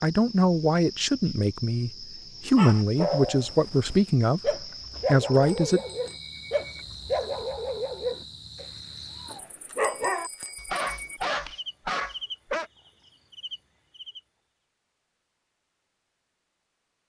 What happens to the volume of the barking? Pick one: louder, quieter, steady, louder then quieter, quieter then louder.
steady.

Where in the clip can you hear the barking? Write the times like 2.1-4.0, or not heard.
2.5-12.7.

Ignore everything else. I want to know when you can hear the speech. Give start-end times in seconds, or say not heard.
0.0-5.8.